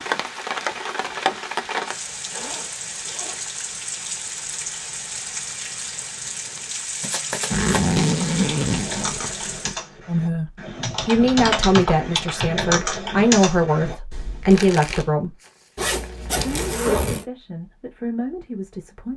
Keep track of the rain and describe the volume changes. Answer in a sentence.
The loudness of the rain goes down.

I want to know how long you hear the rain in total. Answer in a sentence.
The rain can be heard for 10 seconds in total.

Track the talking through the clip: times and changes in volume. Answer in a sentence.
You can hear the talking from 10.1 to 15.3 s, getting quieter then louder; and briefly from 16.3 to 19.1 s.